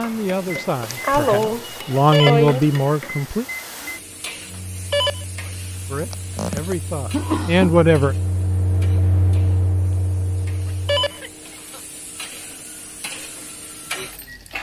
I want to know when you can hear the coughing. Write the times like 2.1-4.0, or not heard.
0.5-2.9, 5.9-7.8, 9.9-11.8.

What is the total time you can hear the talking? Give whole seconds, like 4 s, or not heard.
6 s.